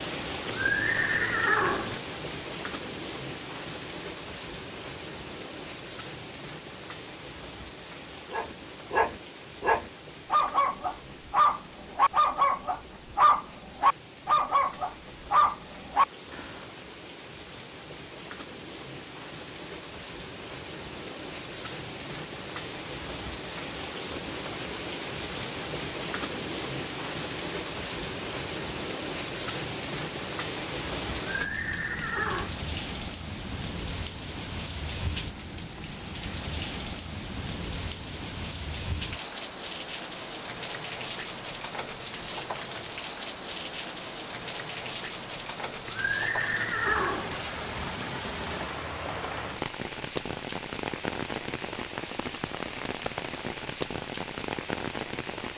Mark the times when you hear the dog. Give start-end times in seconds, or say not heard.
8.3-16.6.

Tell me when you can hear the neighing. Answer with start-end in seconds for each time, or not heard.
0.5-2.0, 31.2-32.5, 45.9-47.4.